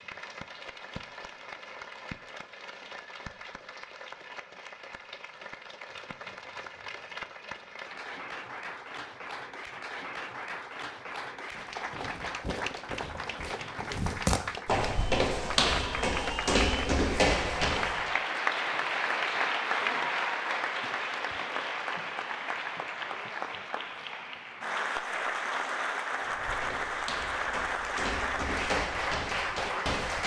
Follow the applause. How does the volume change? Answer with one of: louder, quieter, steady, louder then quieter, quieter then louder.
louder.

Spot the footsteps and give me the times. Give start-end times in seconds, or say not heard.
11.5-18.1, 26.2-30.2.